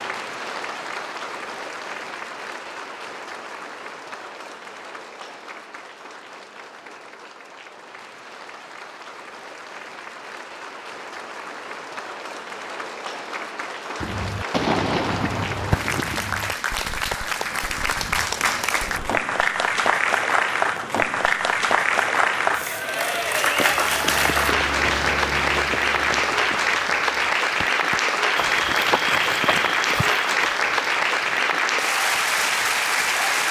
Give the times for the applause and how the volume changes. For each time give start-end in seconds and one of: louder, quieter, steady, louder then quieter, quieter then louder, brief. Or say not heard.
0.0-33.4 louder.